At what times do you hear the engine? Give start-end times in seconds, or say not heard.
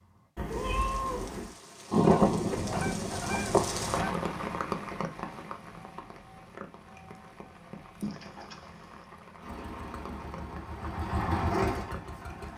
9.4-12.5.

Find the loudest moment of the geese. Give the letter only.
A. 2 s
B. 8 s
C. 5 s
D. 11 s
A.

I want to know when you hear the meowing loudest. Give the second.
1 s.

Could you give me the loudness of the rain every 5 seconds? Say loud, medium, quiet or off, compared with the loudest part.
loud, medium, medium.